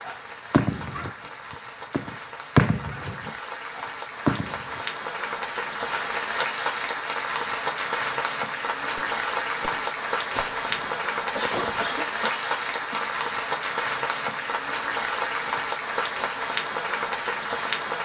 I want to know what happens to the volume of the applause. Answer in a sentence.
The volume of the applause goes up.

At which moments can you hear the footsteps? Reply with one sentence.
The footsteps can't be heard in this clip.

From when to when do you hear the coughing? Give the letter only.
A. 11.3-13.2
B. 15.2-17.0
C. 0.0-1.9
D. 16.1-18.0
A.